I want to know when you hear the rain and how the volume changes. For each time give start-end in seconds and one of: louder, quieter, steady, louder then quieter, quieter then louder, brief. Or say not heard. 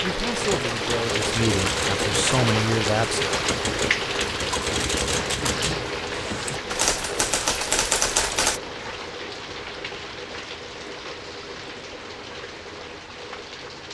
0.0-13.8 quieter.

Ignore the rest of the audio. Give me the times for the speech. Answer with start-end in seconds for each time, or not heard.
0.0-3.2.